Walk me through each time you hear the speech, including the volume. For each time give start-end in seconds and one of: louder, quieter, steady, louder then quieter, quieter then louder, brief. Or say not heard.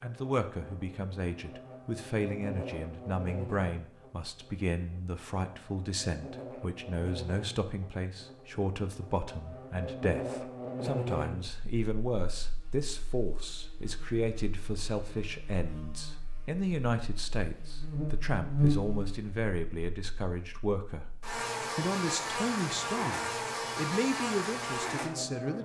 0.0-25.6 steady.